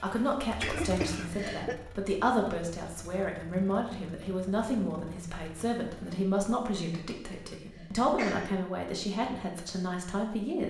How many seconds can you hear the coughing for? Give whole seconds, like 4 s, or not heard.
3 s.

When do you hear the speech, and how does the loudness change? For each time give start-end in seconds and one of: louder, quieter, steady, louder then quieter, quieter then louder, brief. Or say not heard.
0.0-10.6 steady.